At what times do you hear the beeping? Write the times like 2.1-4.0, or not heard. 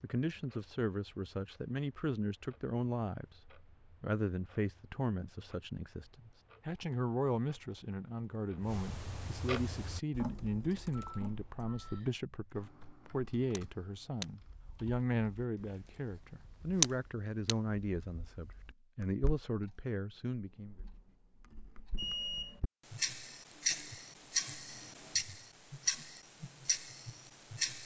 10.9-12.0, 21.9-22.6.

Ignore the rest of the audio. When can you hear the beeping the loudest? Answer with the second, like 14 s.
22 s.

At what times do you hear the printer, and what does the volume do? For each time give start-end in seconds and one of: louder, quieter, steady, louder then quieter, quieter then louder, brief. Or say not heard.
not heard.